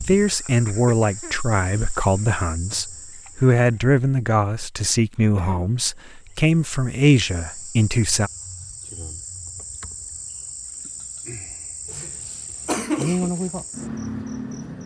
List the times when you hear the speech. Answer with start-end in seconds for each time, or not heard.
0.0-8.3.